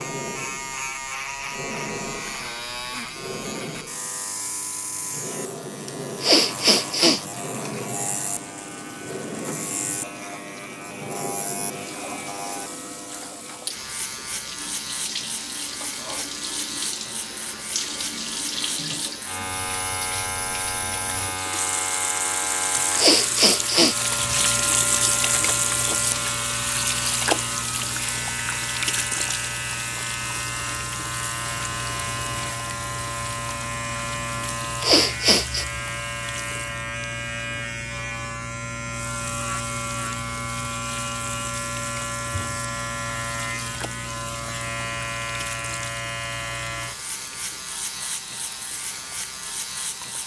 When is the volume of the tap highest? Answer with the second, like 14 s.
25 s.